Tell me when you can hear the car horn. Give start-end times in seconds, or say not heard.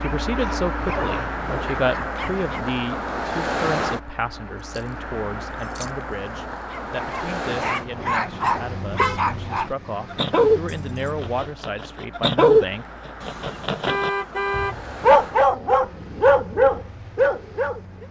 0.8-1.9, 7.8-9.2, 13.2-14.8.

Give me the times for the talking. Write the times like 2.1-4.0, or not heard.
0.0-12.8.